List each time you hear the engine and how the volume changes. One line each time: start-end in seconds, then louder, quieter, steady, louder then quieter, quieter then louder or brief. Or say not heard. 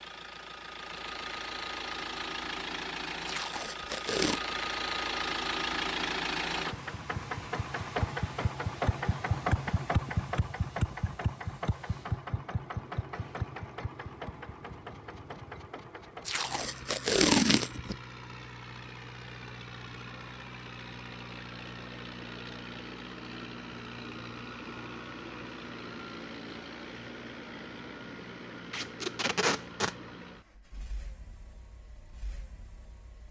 0.0-33.2 quieter.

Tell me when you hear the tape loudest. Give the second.
17 s.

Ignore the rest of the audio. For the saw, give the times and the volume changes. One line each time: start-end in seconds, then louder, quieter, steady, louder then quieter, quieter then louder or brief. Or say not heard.
not heard.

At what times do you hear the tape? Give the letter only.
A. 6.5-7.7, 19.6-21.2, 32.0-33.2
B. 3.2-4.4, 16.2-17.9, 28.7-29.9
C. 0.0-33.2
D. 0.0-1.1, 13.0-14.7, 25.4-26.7
B.